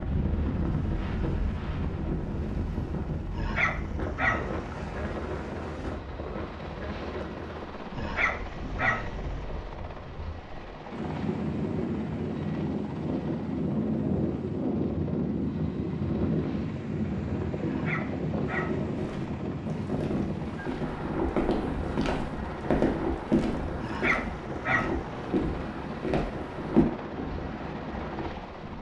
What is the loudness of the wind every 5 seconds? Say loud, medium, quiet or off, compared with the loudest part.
loud, medium, loud, loud, loud, medium.